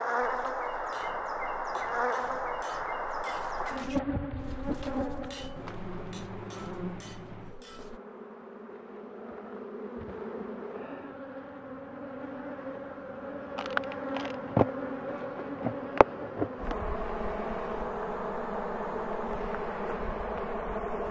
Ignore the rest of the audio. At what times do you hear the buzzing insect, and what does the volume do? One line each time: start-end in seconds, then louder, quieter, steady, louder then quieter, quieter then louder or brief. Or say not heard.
0.0-21.0 quieter then louder.